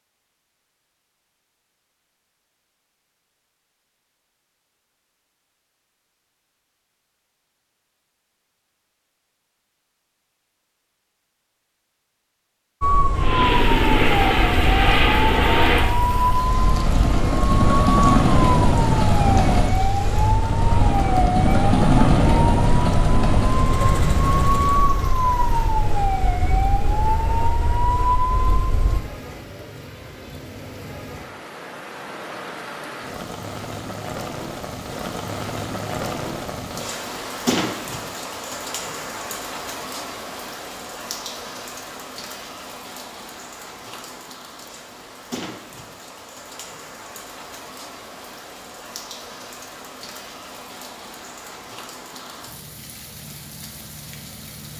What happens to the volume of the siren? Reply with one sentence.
The volume of the siren stays about the same.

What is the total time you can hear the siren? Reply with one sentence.
You can hear the siren for 16 seconds altogether.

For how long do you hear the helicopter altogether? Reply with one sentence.
The helicopter can be heard for 12 seconds in total.